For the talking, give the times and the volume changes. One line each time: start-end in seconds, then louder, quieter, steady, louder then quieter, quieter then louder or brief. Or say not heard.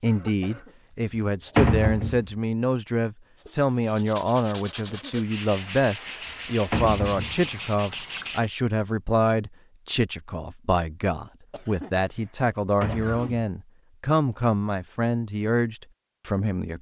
0.0-16.7 steady.